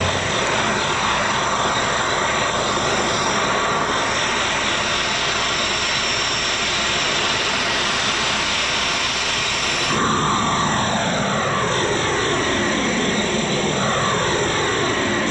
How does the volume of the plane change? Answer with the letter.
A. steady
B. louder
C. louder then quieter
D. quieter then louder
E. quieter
A.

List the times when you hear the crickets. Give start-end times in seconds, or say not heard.
0.0-15.2.